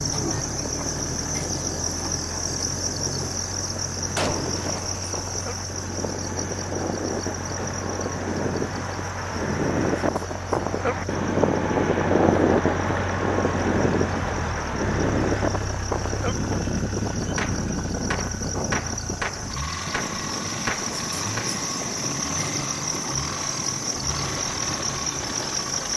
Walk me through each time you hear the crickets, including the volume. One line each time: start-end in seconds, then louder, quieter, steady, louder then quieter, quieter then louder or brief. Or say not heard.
0.0-25.9 quieter then louder.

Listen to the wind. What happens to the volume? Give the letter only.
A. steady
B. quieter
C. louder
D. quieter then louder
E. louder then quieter
E.